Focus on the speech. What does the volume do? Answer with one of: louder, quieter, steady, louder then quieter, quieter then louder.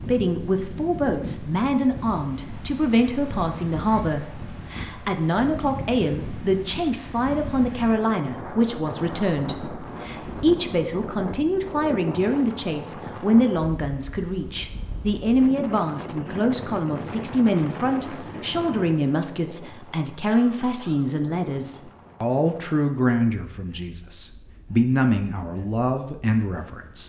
steady.